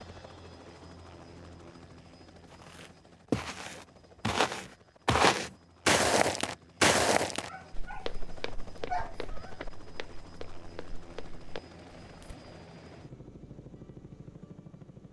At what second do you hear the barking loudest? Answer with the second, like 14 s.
9 s.